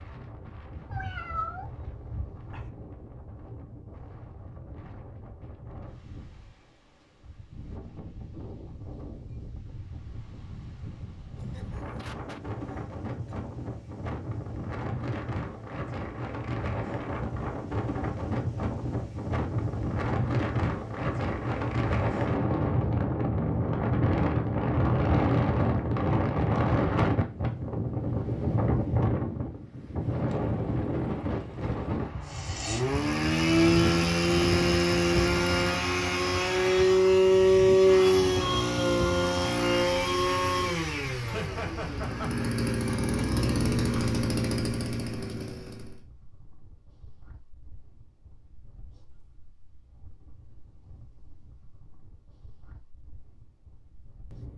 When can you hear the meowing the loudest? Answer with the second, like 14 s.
1 s.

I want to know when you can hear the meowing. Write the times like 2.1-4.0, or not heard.
0.8-2.7.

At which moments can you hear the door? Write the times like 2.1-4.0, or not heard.
not heard.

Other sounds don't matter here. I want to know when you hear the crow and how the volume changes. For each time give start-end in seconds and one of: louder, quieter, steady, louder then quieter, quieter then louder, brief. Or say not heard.
not heard.